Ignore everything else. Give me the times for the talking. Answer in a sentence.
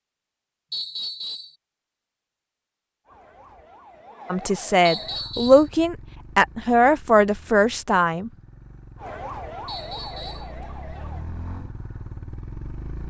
The talking can be heard from 4.3 to 8.3 s.